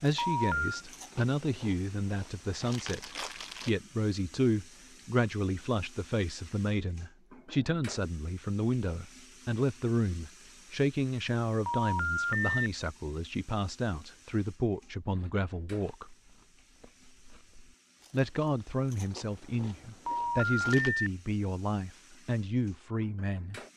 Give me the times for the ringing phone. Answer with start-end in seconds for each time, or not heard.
0.1-0.8, 11.7-12.6, 20.1-21.1.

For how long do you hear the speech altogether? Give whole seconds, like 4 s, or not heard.
22 s.